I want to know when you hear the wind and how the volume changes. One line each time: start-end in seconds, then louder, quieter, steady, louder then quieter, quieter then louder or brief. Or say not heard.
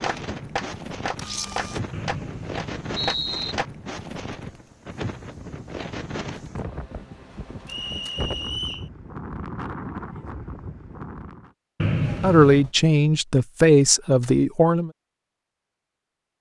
0.0-11.5 steady.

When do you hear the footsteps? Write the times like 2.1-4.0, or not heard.
not heard.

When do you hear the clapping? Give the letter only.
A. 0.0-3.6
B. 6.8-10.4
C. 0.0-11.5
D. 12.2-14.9
A.